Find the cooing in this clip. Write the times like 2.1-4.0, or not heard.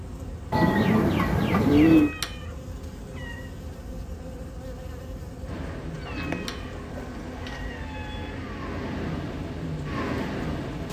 0.5-2.1, 6.0-7.8.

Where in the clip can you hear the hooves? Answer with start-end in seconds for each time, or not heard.
not heard.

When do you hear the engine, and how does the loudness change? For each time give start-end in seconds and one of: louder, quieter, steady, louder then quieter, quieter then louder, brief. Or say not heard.
5.5-10.8 quieter then louder.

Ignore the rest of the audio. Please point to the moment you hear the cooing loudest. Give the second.
2 s.